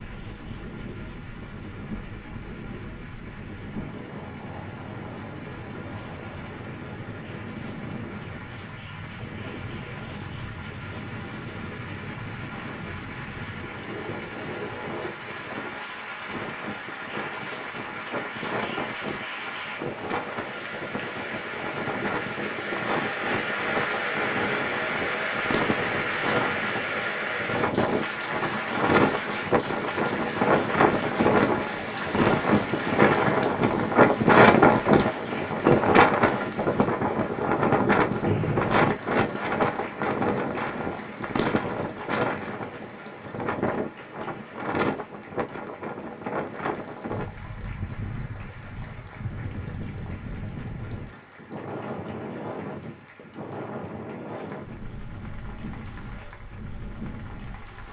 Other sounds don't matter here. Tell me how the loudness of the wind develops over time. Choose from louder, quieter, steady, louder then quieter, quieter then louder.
louder then quieter.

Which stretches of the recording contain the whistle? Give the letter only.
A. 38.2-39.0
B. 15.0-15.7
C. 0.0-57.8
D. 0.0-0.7
A.